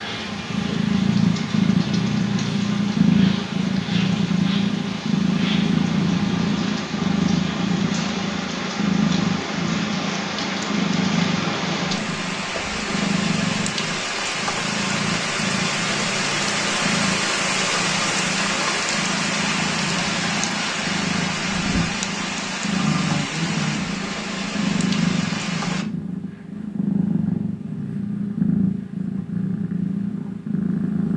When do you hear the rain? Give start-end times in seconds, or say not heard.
0.0-25.9.